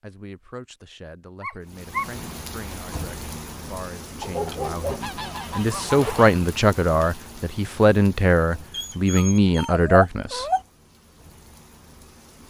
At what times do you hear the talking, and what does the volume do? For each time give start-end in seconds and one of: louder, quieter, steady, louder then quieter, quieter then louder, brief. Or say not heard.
0.0-10.4 louder.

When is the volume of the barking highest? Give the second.
10 s.